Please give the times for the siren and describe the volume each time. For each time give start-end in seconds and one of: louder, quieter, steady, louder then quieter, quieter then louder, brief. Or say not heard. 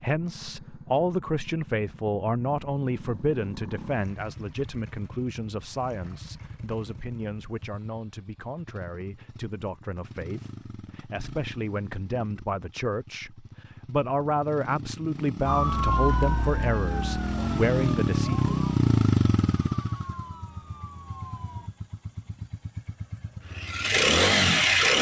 15.4-21.7 quieter.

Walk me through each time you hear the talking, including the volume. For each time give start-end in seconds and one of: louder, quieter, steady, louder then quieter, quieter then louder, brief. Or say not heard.
0.0-18.5 quieter then louder.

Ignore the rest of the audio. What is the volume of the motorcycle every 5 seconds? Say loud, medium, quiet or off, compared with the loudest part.
quiet, quiet, quiet, loud, loud.